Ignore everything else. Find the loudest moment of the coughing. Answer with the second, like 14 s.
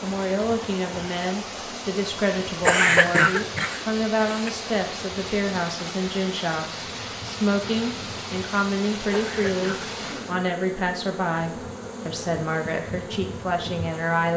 3 s.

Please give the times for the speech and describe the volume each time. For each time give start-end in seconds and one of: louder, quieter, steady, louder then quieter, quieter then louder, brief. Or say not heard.
0.0-14.3 steady.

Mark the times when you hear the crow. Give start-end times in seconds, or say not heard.
not heard.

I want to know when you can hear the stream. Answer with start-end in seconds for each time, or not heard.
0.0-10.4.